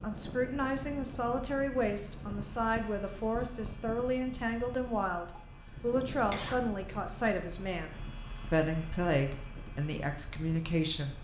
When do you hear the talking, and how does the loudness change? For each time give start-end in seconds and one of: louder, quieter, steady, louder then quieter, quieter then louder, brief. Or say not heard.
0.0-11.1 steady.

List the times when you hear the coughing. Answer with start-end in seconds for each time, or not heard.
5.3-6.6.